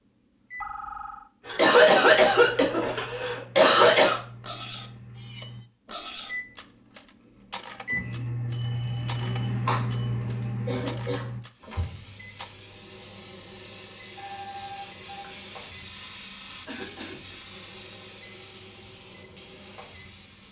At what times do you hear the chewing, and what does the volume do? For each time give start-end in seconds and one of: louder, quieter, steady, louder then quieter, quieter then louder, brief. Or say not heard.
not heard.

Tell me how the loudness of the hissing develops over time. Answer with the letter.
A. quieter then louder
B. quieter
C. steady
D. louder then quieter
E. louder
D.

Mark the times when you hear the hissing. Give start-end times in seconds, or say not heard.
11.5-20.4.